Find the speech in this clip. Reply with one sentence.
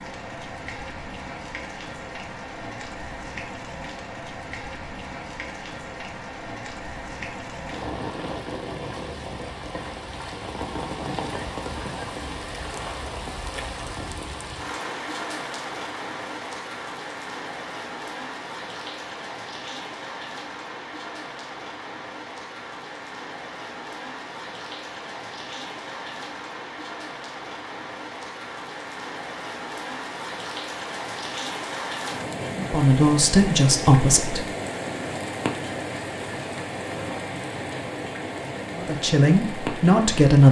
The speech can be heard from 32.5 to 34.5 s and from 38.8 to 40.4 s.